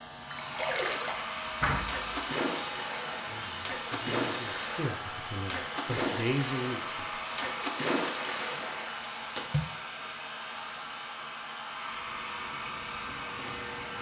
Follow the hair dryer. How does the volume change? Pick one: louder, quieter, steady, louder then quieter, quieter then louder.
steady.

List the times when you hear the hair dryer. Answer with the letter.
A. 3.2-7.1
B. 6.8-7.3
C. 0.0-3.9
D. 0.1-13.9
D.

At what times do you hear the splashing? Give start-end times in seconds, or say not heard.
0.3-9.7.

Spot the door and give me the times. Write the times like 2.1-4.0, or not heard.
1.6-2.2.